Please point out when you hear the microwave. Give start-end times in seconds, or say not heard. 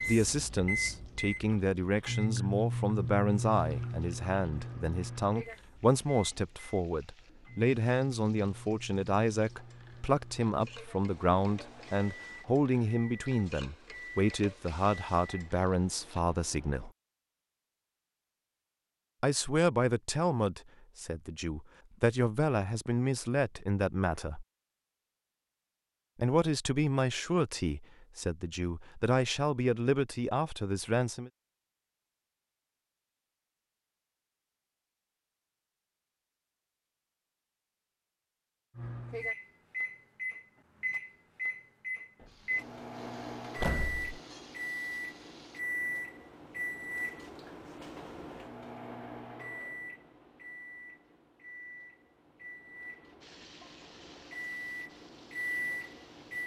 0.0-16.9, 38.8-56.4.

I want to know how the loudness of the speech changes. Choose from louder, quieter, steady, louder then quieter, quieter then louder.
steady.